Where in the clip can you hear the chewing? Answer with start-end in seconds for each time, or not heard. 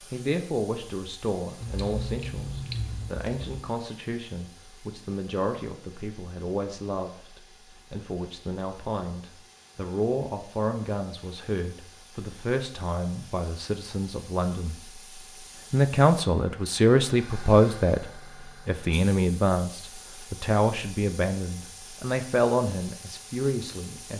1.6-3.5.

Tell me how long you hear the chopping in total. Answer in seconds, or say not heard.
not heard.